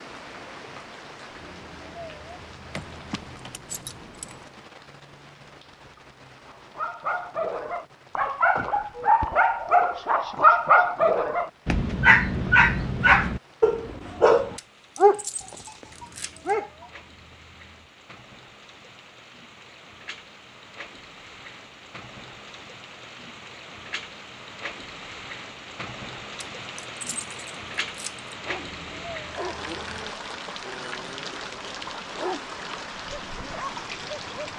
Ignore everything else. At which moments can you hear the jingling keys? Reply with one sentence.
You can hear the jingling keys from 2.7 to 4.5 s, from 14.6 to 16.6 s and from 26.4 to 28.3 s.